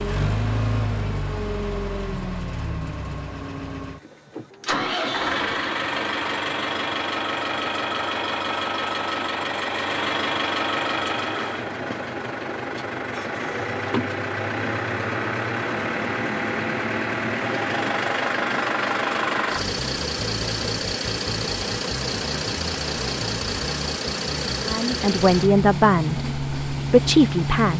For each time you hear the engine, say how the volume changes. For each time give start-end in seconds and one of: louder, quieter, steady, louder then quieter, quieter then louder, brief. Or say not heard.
0.0-27.7 steady.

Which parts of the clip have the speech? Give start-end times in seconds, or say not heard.
24.6-27.7.